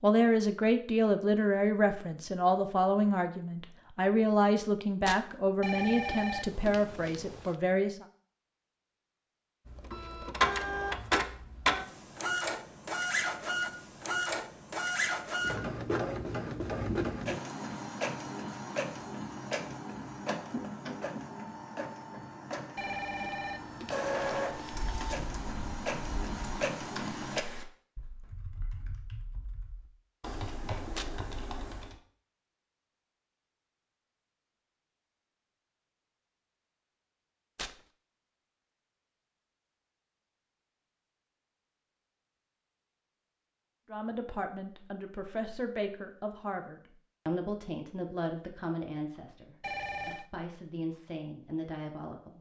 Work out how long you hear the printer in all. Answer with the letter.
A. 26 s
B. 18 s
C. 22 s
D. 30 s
B.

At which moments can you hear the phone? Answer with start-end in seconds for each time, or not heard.
5.6-7.5, 22.8-24.8, 49.6-50.3.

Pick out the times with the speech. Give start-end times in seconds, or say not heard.
0.0-8.1, 43.9-52.3.